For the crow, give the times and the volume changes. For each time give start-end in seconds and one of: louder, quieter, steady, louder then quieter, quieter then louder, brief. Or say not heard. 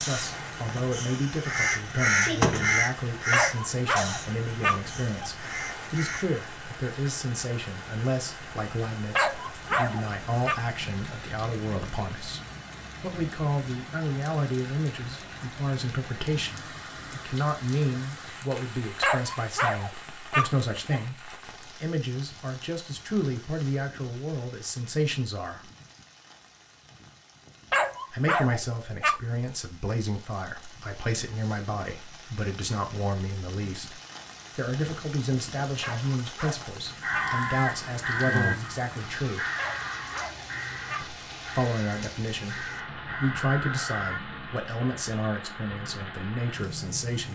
0.0-6.2 louder then quieter
36.9-44.2 quieter then louder.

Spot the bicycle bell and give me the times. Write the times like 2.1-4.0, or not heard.
not heard.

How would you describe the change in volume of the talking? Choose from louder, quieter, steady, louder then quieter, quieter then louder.
steady.